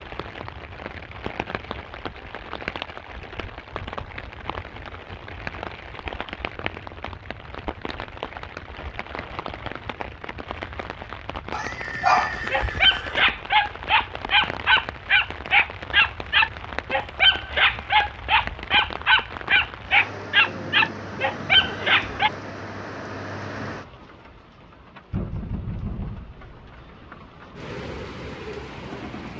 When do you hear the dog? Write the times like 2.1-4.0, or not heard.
11.5-22.3.